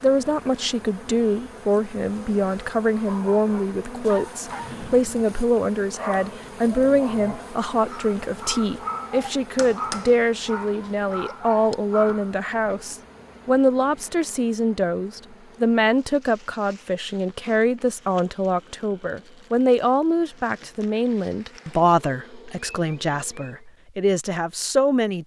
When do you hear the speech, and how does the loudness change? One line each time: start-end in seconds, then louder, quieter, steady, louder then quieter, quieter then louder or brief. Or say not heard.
0.0-25.2 steady.